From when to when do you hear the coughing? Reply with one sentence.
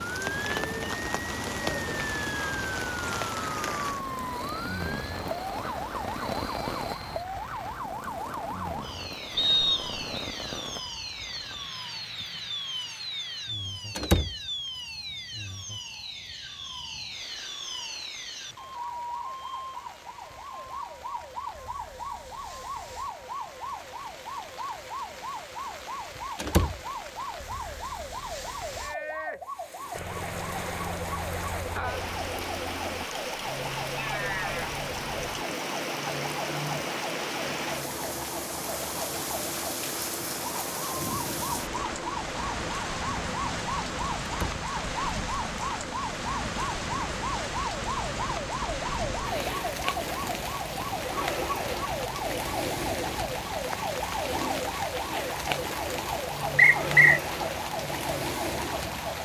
The coughing can't be heard in this clip.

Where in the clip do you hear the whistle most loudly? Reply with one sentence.
The volume of the whistle peaks at 57 seconds.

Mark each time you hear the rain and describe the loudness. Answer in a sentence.
You can hear the rain from 0.0 to 59.1 s, getting quieter then louder.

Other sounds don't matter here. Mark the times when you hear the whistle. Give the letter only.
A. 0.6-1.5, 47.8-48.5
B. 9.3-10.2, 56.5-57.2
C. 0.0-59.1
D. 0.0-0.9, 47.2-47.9
B.